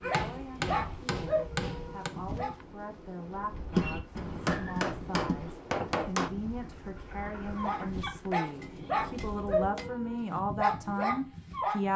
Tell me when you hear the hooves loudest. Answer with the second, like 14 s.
4 s.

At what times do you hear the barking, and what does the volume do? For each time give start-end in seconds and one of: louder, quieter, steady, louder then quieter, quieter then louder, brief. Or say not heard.
0.0-2.5 brief
7.5-11.9 steady.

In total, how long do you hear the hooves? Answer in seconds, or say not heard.
2 s.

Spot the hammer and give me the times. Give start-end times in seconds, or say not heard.
0.1-2.1, 4.5-6.3, 8.6-10.3.